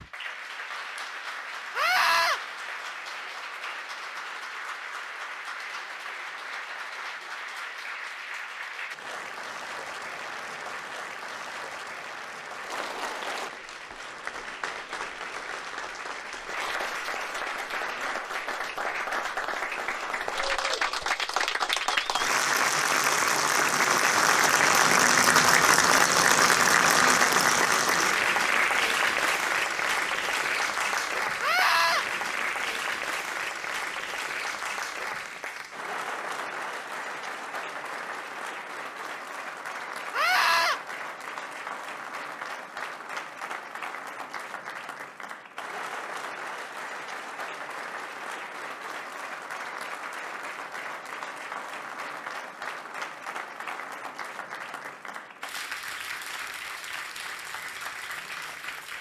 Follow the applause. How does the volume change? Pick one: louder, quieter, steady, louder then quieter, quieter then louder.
louder then quieter.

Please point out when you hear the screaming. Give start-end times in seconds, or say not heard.
1.8-2.4, 31.4-32.0, 40.1-40.8.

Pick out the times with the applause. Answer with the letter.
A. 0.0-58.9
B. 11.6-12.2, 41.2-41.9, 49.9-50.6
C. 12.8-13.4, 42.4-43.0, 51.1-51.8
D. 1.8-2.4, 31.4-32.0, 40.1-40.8
A.